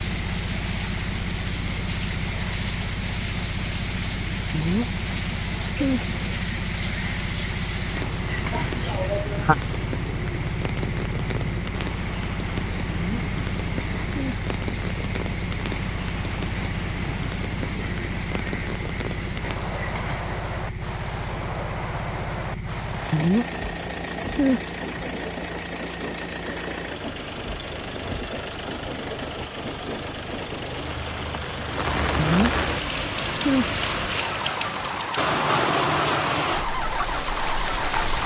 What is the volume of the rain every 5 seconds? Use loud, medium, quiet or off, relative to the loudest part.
medium, medium, medium, medium, medium, medium, loud, loud.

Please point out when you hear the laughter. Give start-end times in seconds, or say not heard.
8.5-9.6.